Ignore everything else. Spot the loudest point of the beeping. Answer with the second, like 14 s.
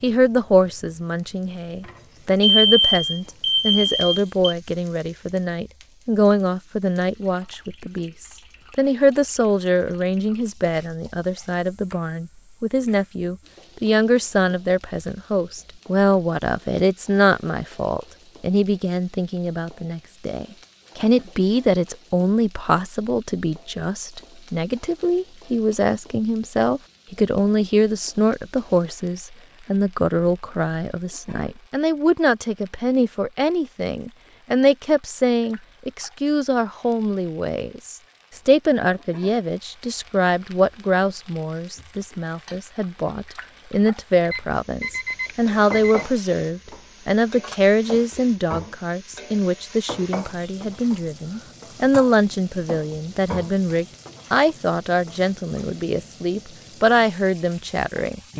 3 s.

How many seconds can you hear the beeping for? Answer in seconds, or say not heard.
4 s.